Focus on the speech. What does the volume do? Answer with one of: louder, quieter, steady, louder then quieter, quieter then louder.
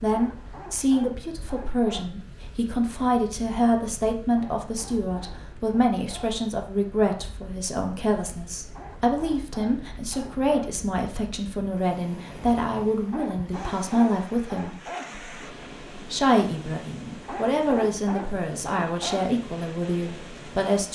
steady.